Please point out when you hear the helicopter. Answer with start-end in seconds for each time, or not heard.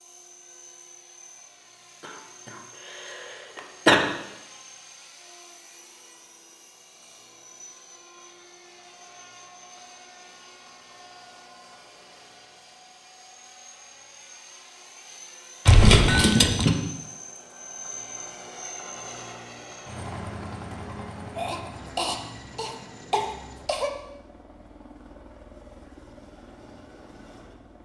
0.0-27.8.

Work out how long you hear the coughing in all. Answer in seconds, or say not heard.
4 s.